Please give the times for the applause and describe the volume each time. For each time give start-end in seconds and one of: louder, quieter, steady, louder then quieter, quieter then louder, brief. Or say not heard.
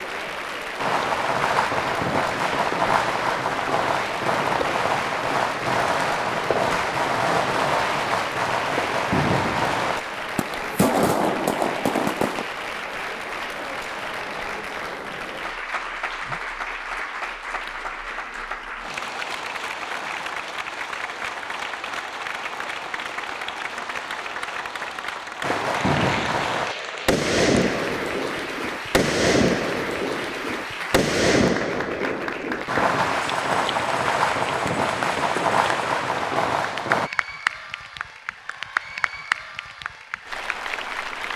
0.0-41.3 steady.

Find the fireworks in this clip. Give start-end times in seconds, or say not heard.
0.8-12.4, 25.4-37.1.